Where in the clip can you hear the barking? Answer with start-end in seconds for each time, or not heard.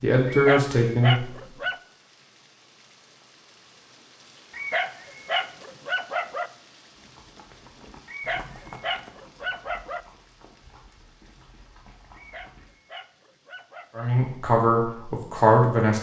0.2-1.8, 4.5-6.5, 8.1-10.1, 12.1-14.1.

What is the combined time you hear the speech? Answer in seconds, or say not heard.
3 s.